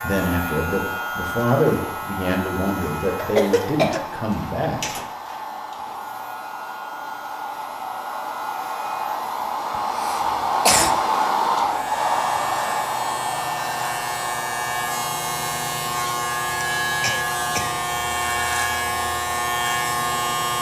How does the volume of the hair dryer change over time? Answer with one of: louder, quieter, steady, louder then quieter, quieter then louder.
louder then quieter.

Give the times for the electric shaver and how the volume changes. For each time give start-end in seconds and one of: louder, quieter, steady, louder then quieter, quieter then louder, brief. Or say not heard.
0.0-20.5 quieter then louder.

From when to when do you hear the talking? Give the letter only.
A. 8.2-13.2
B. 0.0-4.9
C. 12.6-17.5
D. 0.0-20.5
B.